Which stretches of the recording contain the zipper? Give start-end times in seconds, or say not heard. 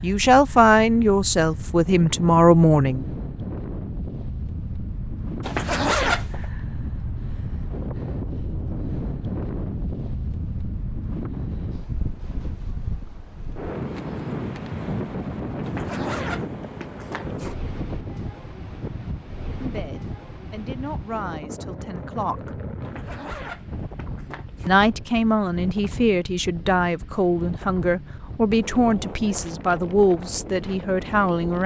5.4-6.5, 15.7-17.6, 22.8-24.8.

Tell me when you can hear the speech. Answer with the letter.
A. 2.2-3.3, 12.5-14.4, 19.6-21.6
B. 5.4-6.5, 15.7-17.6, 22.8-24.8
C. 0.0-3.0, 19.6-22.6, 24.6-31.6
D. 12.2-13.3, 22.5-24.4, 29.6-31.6
C.